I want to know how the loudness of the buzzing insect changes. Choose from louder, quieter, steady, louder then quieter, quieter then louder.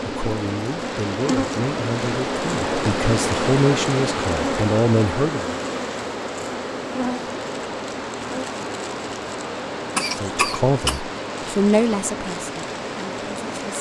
quieter.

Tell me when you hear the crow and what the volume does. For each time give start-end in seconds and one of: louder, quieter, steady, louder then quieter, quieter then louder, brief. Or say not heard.
not heard.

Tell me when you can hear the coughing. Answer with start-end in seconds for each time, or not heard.
9.9-11.0.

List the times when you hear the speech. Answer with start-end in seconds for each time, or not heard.
0.1-5.5, 10.1-13.7.